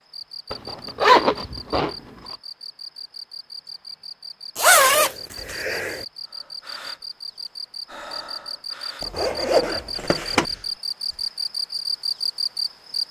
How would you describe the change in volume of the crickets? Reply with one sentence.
The loudness of the crickets goes up.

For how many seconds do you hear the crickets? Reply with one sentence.
The crickets can be heard for 13 seconds in total.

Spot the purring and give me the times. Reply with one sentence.
You can't hear the purring here.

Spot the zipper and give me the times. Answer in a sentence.
You can hear the zipper from 0.5 to 1.9 s, from 4.5 to 6.0 s and from 9.0 to 10.4 s.